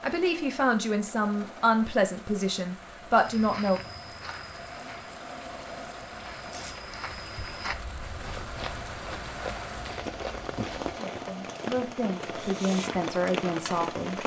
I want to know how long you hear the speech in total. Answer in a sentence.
The speech can be heard for 7 seconds in total.